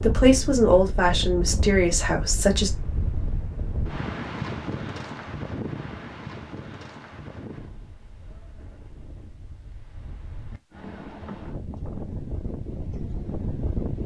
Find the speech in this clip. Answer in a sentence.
You can hear the speech from 0.0 to 2.7 s.